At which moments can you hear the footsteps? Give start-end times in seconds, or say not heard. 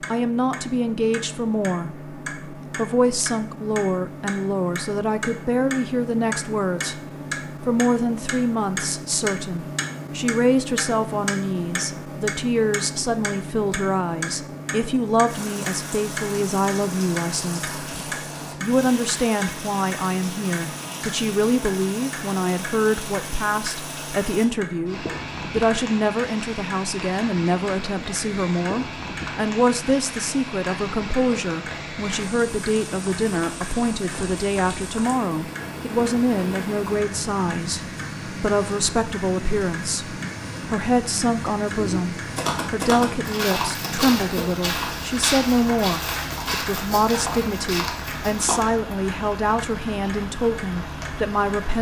41.6-48.6.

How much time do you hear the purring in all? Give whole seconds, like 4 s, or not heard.
not heard.